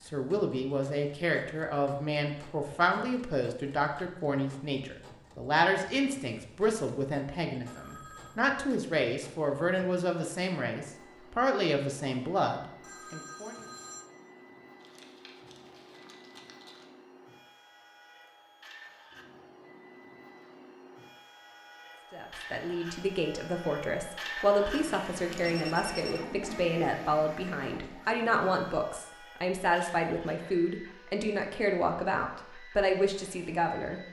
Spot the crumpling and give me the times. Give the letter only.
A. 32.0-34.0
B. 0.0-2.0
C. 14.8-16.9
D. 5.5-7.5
C.